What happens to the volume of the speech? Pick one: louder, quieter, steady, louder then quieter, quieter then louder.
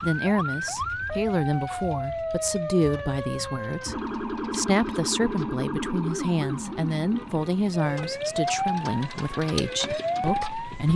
steady.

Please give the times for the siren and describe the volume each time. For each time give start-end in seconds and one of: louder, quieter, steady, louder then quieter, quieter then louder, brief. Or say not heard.
0.0-10.9 steady.